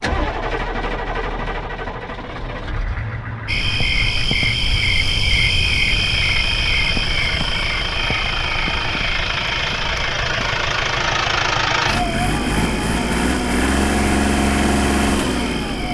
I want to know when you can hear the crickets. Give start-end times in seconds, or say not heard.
3.5-15.8.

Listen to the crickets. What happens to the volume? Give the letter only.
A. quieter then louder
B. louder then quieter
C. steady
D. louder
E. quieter
E.